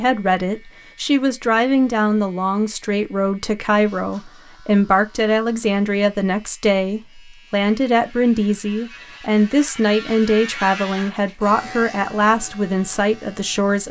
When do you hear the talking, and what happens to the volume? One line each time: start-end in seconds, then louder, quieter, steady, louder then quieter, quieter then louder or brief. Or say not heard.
0.0-13.8 steady.